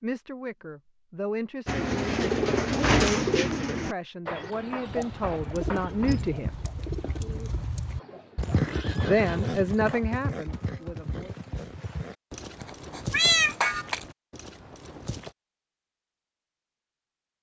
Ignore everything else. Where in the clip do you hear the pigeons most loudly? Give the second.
3 s.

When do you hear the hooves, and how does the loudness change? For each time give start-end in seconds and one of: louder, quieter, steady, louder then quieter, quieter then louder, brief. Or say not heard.
4.8-15.3 louder then quieter.